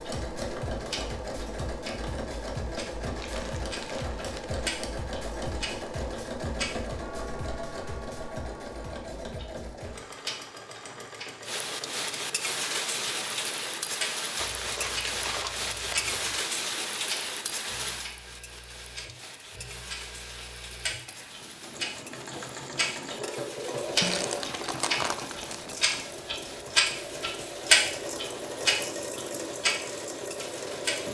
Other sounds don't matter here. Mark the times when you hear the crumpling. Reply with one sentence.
The crumpling can be heard from 3.1 to 4.6 s, from 14.3 to 16.4 s and from 24.0 to 26.0 s.